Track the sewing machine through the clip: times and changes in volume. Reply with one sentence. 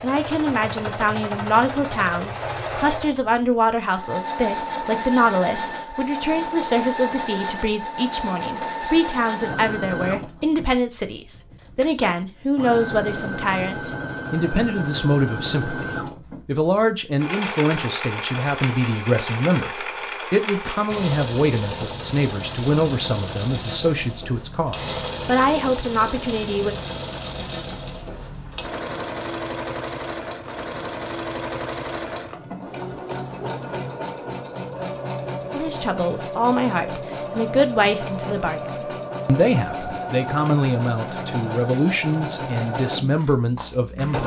The sewing machine can be heard from 0.0 to 44.2 s, at a steady volume.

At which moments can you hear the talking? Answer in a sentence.
You can hear the talking from 0.0 to 26.8 s and from 35.5 to 44.2 s.